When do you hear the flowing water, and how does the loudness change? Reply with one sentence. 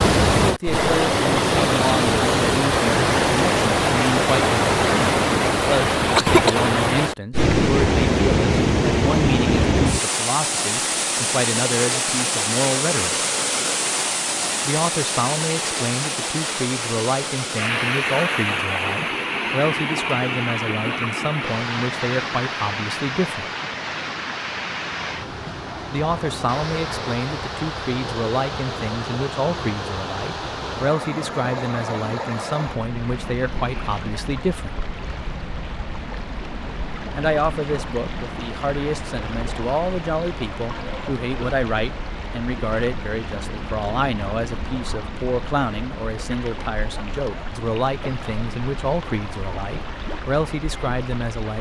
The flowing water can be heard from 0.0 to 51.5 s, getting quieter.